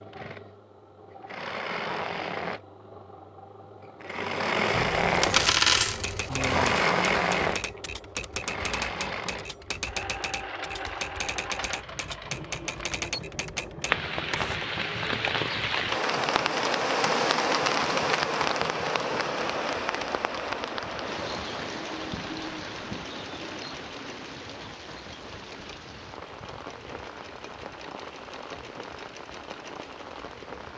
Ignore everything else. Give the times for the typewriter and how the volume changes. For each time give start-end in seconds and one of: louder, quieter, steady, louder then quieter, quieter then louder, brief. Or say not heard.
5.9-14.6 steady.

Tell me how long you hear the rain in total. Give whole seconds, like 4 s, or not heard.
17 s.